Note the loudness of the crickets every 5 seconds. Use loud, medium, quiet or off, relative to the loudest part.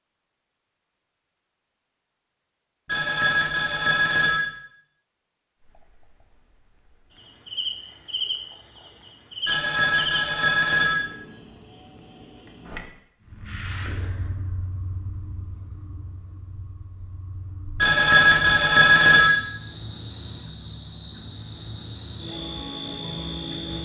off, loud, medium, medium, loud.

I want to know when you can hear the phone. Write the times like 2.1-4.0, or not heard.
2.9-4.4, 9.4-10.9, 17.8-19.3.